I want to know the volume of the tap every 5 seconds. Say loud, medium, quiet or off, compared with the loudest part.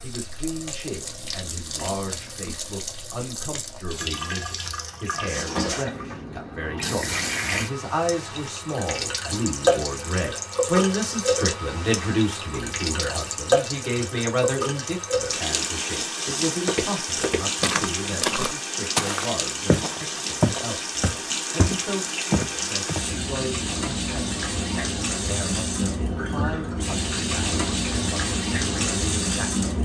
medium, loud, loud, loud, loud, loud.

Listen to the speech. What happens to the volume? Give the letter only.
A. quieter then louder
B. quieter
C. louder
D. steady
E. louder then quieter
E.